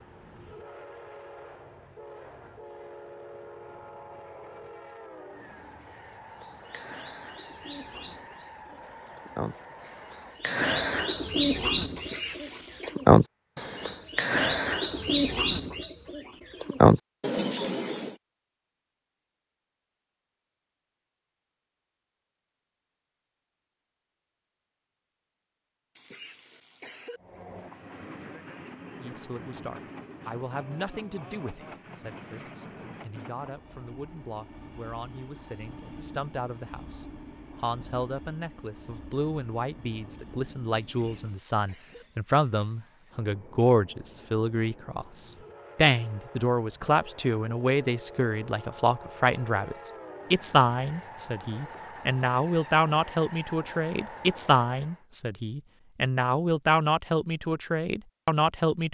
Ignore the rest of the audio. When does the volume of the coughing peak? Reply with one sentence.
The volume of the coughing peaks at 12 seconds.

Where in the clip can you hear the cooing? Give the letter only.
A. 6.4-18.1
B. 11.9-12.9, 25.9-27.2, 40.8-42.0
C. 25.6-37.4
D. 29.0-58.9
A.